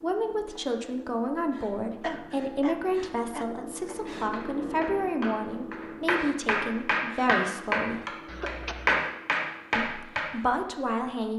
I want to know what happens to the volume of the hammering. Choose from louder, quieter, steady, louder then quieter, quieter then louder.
louder.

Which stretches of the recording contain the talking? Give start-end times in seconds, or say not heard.
0.0-8.1, 9.8-11.3.